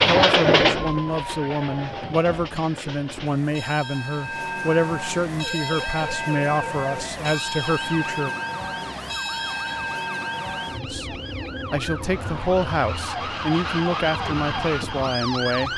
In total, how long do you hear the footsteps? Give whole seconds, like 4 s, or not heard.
not heard.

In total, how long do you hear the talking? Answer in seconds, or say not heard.
13 s.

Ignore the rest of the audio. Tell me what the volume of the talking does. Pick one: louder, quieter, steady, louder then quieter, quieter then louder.
steady.